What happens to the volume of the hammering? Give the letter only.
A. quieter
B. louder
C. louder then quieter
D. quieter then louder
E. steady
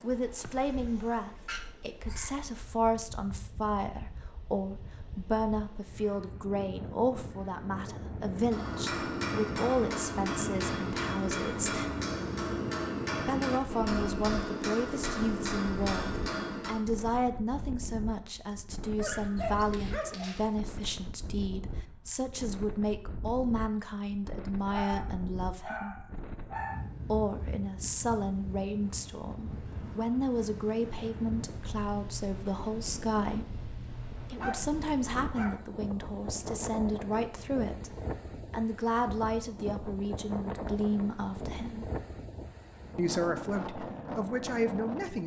E.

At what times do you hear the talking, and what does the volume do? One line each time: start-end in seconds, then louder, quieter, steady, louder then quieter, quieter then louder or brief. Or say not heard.
0.0-11.9 steady
13.2-25.9 steady
27.1-41.9 steady
43.0-45.2 brief.